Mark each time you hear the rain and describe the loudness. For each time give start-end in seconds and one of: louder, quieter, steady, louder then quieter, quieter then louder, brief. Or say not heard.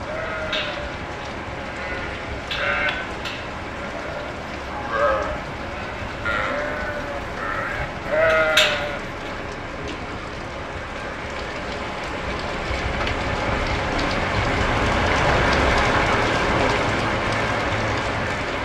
0.0-18.5 louder.